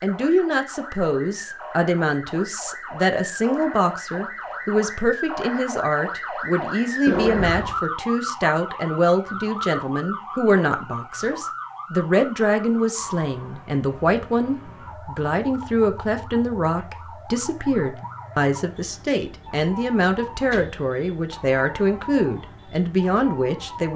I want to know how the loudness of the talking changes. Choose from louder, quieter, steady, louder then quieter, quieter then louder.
steady.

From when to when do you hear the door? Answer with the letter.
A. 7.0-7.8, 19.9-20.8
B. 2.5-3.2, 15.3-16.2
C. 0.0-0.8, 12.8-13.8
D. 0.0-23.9
A.